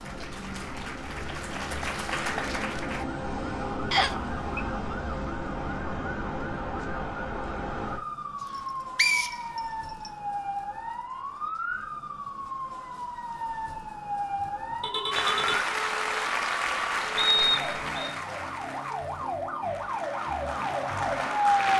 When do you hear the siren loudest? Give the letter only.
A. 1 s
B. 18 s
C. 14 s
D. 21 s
D.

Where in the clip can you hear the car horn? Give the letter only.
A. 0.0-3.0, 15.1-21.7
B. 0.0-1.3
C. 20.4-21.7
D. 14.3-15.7
D.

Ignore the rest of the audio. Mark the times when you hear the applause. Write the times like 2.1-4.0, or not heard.
0.0-3.0, 15.1-21.7.